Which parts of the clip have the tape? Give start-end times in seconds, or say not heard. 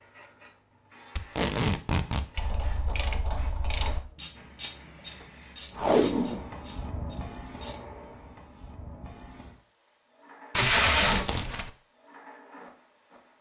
1.1-2.2, 5.8-6.5, 10.6-11.7.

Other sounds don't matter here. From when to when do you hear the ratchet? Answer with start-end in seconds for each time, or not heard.
2.4-7.8.